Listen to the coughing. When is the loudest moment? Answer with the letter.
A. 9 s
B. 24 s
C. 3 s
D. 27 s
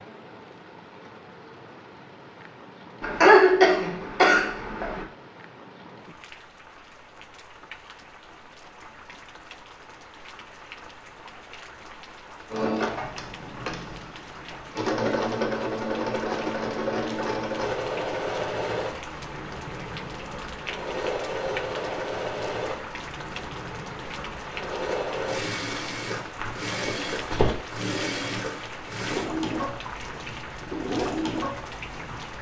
C.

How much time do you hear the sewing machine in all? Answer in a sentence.
You can hear the sewing machine for 20 seconds altogether.